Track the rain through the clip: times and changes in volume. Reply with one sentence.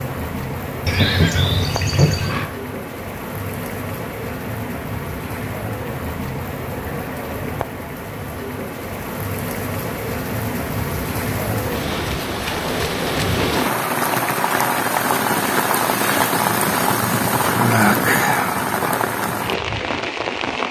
You can hear the rain from 0.0 to 20.6 s, getting louder.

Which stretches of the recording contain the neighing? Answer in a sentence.
You can hear the neighing from 0.8 to 2.5 s.